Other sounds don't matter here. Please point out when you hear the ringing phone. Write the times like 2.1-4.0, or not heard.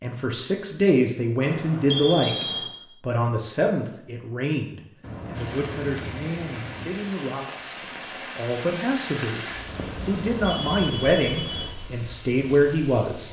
1.4-2.8, 5.0-7.1, 9.7-11.7.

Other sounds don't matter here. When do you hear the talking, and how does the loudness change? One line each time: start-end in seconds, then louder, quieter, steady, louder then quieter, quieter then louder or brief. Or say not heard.
0.0-13.2 quieter then louder.